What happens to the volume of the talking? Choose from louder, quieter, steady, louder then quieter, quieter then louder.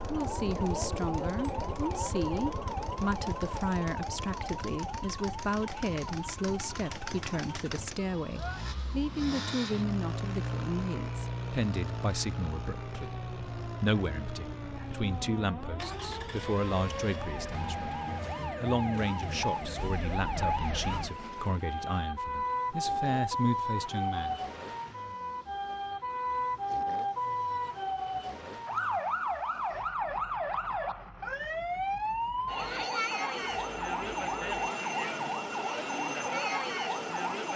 steady.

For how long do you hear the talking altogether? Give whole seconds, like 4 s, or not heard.
24 s.